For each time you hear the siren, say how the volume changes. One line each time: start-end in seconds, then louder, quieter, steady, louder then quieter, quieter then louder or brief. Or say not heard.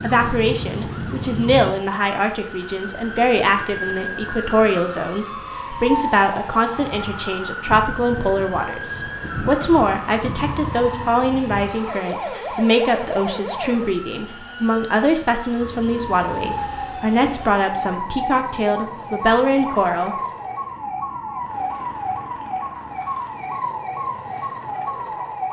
0.0-25.4 steady.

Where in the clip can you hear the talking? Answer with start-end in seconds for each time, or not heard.
0.0-20.1.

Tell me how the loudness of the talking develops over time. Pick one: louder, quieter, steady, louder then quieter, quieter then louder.
steady.